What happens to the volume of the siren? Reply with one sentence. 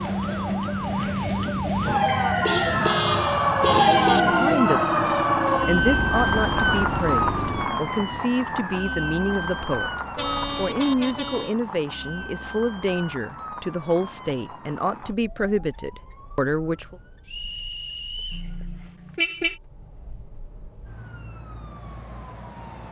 The loudness of the siren goes down.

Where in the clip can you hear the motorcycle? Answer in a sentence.
The motorcycle can be heard from 0.0 to 7.7 s.